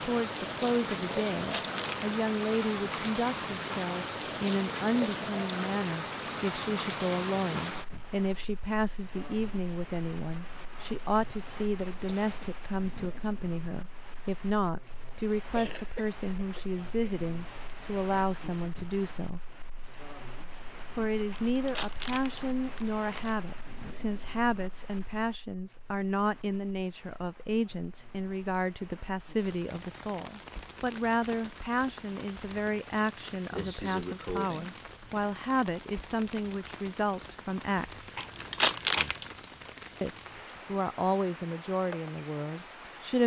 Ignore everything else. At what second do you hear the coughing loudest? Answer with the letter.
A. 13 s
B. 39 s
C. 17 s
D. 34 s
D.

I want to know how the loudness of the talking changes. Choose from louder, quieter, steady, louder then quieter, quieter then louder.
steady.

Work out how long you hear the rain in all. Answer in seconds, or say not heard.
43 s.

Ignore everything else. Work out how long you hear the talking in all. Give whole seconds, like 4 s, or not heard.
40 s.